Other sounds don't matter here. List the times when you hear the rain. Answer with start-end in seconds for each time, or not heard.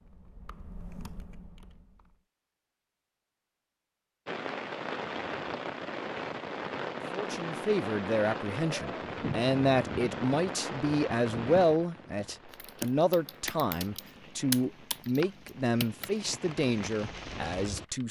4.2-17.9.